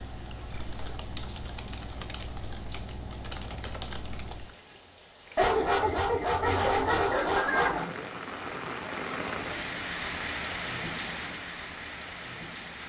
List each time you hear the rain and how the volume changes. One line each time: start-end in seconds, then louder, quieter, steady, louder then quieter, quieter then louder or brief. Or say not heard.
0.0-12.8 louder.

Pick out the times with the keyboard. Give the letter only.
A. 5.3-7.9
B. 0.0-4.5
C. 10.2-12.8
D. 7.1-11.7
B.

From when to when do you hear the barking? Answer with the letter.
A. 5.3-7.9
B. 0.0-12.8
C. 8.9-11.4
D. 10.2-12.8
A.